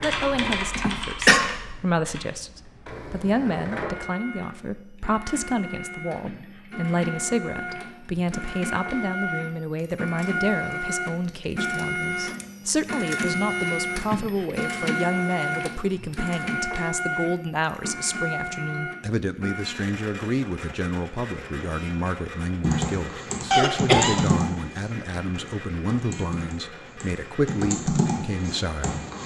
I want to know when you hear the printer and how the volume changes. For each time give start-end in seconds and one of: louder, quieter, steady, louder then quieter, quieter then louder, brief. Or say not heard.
0.0-29.2 louder then quieter.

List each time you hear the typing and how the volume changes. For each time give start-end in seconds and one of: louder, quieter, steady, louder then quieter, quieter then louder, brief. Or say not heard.
0.0-2.2 brief
22.6-29.2 quieter then louder.